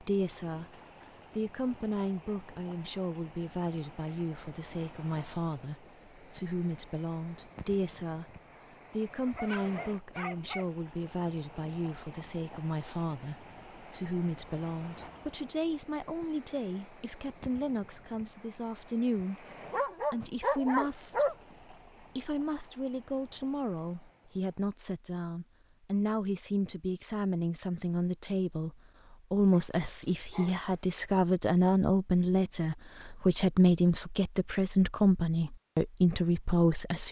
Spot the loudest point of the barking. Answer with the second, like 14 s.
21 s.